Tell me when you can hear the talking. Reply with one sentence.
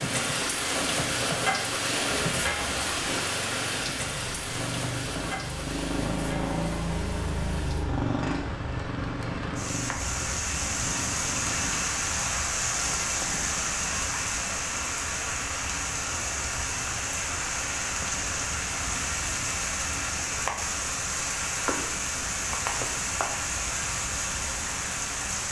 The talking can't be heard in this clip.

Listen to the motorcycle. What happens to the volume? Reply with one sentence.
The loudness of the motorcycle goes up, then down.